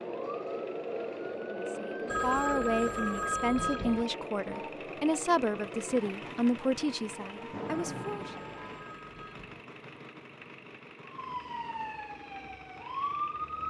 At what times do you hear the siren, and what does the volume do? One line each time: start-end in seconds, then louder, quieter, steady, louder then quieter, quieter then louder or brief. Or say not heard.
0.0-8.9 quieter
11.0-13.6 brief.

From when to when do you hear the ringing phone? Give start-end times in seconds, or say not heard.
2.0-4.0, 7.7-9.6.